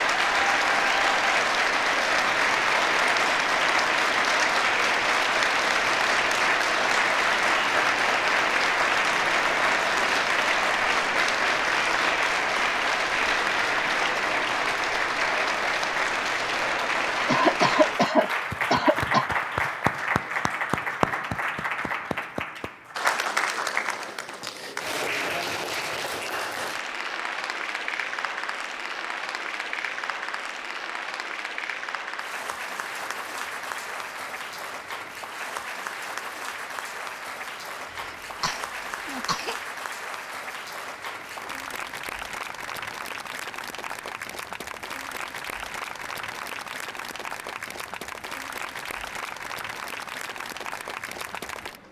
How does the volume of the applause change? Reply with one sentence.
The volume of the applause goes down.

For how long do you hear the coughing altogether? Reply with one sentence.
You can hear the coughing for 4 seconds altogether.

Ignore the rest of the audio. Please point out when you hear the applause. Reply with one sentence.
You can hear the applause from 0.0 to 51.8 s.